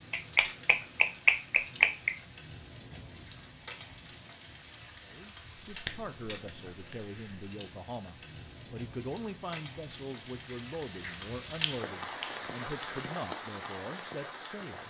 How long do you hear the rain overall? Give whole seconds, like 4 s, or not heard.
15 s.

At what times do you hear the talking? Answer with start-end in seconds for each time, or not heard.
5.0-14.8.